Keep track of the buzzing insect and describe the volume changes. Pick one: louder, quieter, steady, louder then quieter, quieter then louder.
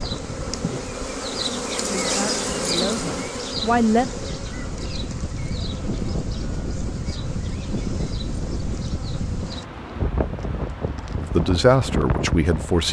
quieter.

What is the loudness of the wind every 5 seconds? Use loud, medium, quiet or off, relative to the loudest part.
medium, loud, loud.